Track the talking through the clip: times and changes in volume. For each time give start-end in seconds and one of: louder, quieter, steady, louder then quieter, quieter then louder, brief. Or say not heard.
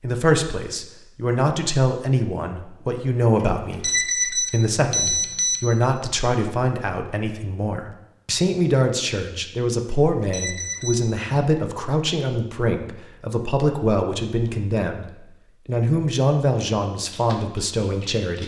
0.0-18.4 steady.